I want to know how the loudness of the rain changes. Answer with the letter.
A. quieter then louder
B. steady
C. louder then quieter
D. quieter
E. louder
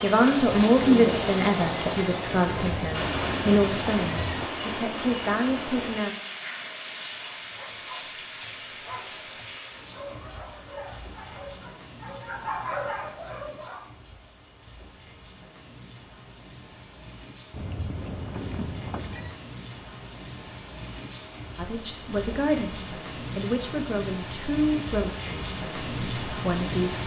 A.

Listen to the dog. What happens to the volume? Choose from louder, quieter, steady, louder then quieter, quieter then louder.
louder.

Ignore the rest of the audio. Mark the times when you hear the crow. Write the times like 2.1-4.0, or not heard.
not heard.